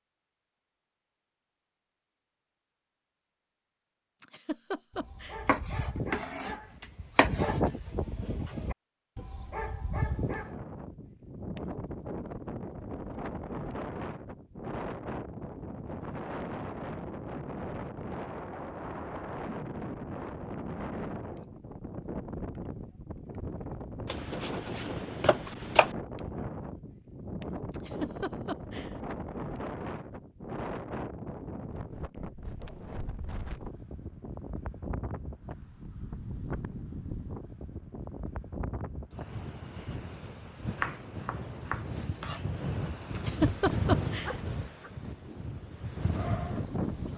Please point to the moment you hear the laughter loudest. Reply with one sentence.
The loudest moment of the laughter is at 44 seconds.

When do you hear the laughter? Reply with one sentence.
You can hear the laughter from 4.2 to 5.4 s, from 27.7 to 28.9 s and from 43.1 to 44.4 s.